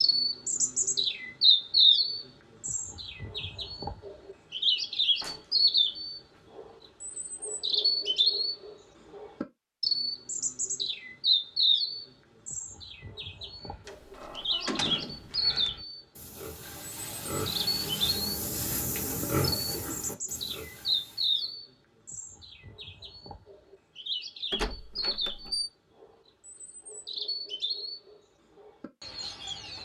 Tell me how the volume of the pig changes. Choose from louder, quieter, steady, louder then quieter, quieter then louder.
louder then quieter.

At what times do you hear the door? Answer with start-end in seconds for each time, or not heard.
5.2-6.4, 13.8-15.7, 24.5-25.7.